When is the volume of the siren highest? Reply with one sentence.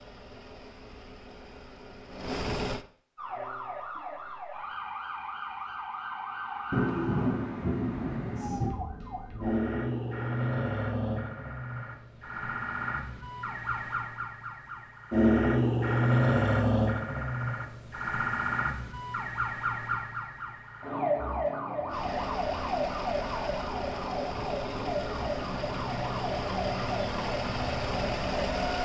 The volume of the siren peaks at 16 seconds.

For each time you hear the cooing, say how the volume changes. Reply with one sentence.
The cooing can't be heard in this clip.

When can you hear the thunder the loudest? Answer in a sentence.
The loudest moment of the thunder is at 7 seconds.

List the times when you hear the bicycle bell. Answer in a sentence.
The bicycle bell can't be heard in this clip.